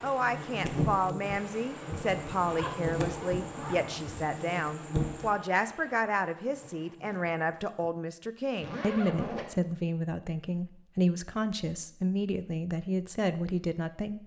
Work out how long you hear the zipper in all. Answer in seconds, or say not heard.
3 s.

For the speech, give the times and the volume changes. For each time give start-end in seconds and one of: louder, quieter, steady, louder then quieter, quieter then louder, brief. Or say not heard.
0.0-14.2 steady.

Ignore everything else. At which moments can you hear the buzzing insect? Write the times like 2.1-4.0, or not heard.
0.0-7.9.